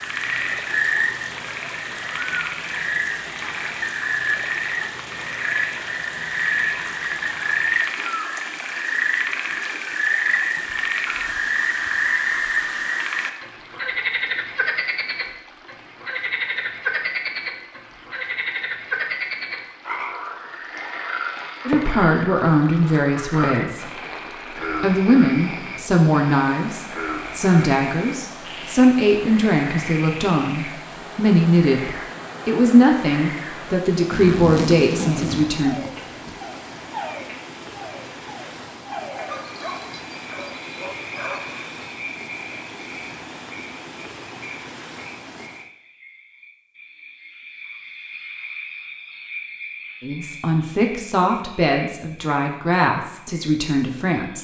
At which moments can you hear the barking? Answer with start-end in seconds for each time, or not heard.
39.2-41.7.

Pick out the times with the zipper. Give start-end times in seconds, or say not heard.
34.1-36.4.